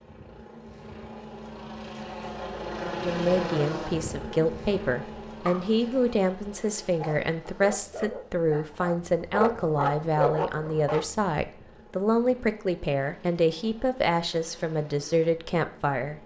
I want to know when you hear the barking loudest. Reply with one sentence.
The loudest moment of the barking is at 10 seconds.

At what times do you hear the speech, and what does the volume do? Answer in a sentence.
The speech can be heard from 2.9 to 16.2 s, at a steady volume.